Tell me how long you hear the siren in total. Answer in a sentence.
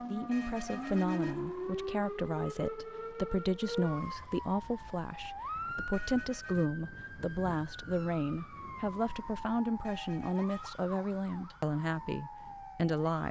The siren can be heard for 13 seconds in total.